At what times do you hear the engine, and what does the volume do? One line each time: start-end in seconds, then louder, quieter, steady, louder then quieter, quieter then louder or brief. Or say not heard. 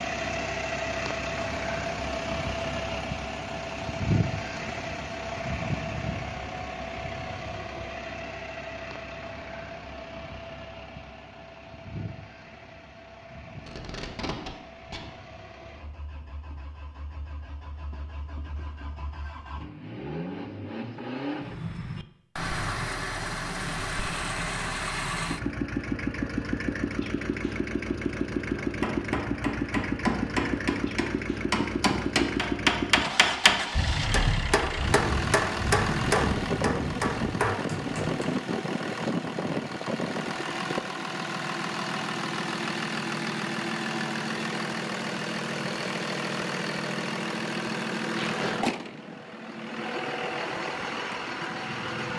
0.0-52.1 quieter then louder.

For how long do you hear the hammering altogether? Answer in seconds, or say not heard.
10 s.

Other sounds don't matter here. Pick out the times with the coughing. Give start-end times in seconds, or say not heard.
not heard.